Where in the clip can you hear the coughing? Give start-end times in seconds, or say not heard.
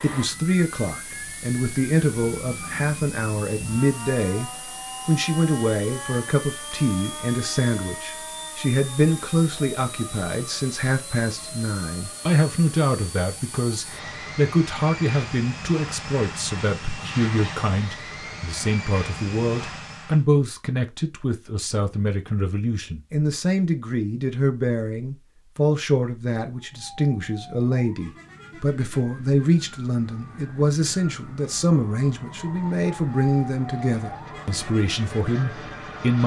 not heard.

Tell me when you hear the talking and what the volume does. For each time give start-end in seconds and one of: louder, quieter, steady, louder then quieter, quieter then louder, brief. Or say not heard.
0.0-36.2 steady.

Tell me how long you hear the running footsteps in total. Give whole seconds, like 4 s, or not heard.
not heard.